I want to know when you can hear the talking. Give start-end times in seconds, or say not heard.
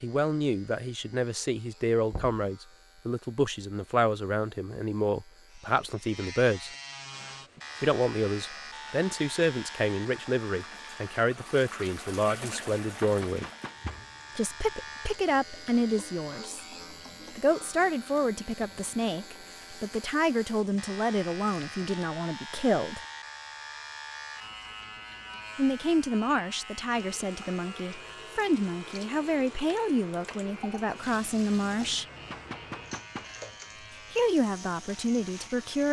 0.0-6.7, 7.8-13.4, 14.3-16.6, 17.4-23.0, 25.6-32.0, 34.1-35.8.